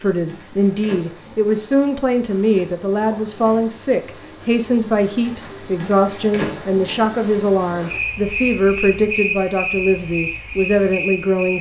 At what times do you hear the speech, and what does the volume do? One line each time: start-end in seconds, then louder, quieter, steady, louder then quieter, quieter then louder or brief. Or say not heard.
0.0-11.5 steady.